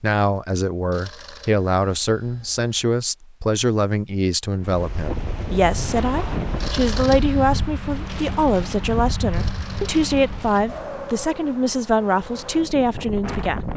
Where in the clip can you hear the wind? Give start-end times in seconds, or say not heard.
4.6-13.7.